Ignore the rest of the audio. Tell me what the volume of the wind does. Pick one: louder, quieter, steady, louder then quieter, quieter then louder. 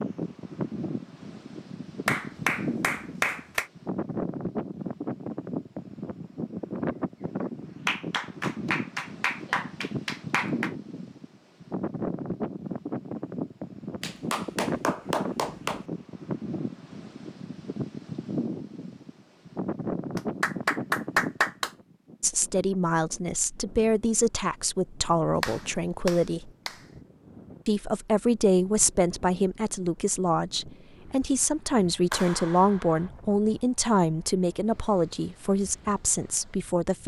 quieter.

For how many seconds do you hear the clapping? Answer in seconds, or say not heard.
10 s.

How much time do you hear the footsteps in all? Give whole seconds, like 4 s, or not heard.
not heard.